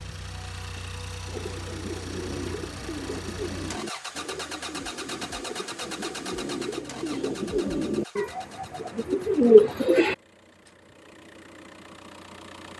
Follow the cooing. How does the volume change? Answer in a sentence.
The loudness of the cooing goes up.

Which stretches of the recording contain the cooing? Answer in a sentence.
You can hear the cooing from 1.2 to 10.2 s.